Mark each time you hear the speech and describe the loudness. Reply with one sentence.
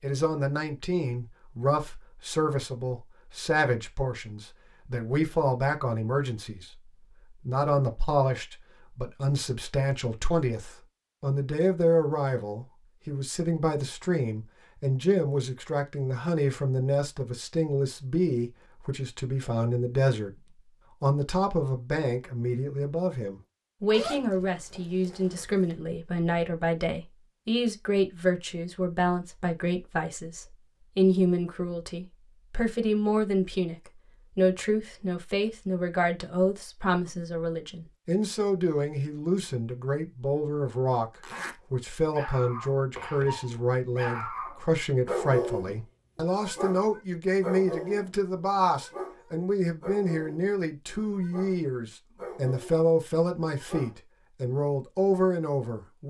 The speech can be heard from 0.0 to 20.3 s, at a steady volume; from 21.0 to 41.1 s, at a steady volume; and from 41.7 to 56.0 s, at a steady volume.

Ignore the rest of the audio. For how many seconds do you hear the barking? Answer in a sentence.
The barking can be heard for 12 seconds in total.